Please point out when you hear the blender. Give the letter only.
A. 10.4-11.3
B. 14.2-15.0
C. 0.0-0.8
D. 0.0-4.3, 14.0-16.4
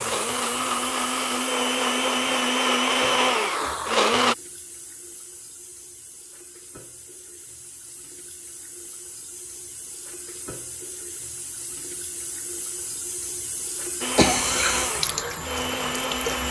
D.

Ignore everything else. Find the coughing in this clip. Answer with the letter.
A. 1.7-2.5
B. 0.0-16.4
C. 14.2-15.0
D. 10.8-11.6
C.